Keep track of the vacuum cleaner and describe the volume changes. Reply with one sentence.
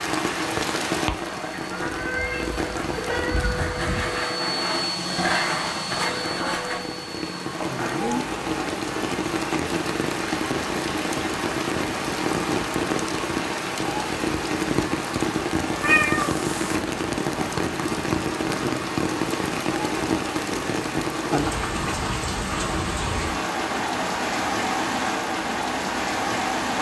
The loudness of the vacuum cleaner goes down.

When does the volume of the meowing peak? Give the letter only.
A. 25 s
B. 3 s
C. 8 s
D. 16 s
D.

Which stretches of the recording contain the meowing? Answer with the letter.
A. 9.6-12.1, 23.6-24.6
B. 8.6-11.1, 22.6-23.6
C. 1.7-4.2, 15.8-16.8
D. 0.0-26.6
C.